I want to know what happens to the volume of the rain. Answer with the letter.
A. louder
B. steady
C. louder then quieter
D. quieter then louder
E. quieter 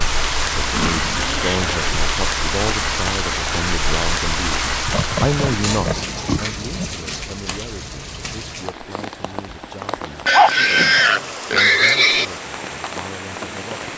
E.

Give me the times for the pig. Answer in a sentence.
You can hear the pig from 0.6 to 2.0 s, from 4.8 to 7.0 s and from 10.2 to 12.2 s.